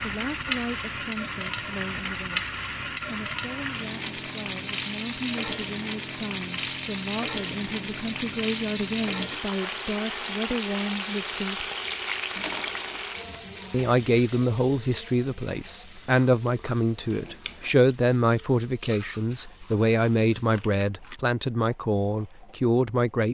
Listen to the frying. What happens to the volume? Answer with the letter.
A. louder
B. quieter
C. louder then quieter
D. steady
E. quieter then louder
B.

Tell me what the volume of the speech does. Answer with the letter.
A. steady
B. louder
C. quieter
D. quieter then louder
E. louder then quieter
B.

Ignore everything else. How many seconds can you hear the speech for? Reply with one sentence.
The speech can be heard for 21 seconds in total.